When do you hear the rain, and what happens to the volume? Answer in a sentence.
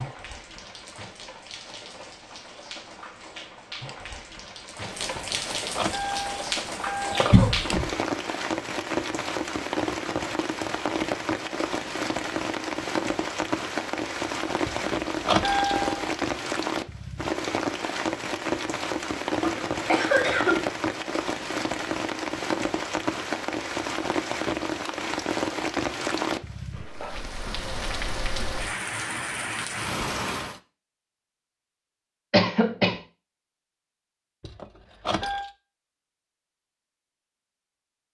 You can hear the rain from 0.0 to 30.6 s, getting louder.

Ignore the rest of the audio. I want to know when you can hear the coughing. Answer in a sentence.
You can hear the coughing from 7.3 to 7.8 s, from 19.4 to 20.6 s and from 32.3 to 33.0 s.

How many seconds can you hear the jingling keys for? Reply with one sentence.
You can hear the jingling keys for 5 seconds altogether.